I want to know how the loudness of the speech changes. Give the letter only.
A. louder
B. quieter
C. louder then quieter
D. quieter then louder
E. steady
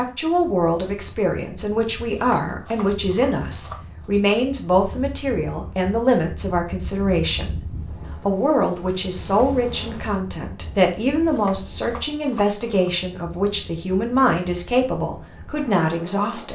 E.